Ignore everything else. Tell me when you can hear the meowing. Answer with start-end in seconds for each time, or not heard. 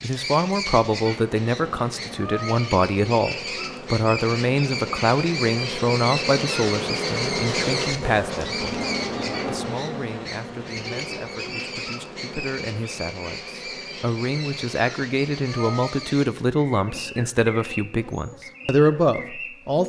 2.1-2.8, 15.4-16.1.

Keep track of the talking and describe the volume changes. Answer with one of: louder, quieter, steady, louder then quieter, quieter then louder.
quieter then louder.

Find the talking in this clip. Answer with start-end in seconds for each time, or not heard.
0.0-19.8.